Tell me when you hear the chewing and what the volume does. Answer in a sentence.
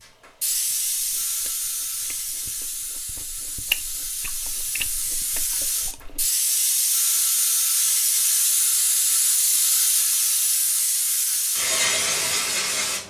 The chewing can be heard from 0.0 to 6.3 s, getting louder then quieter.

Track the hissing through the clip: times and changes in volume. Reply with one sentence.
The hissing can be heard from 0.4 to 13.0 s, getting louder.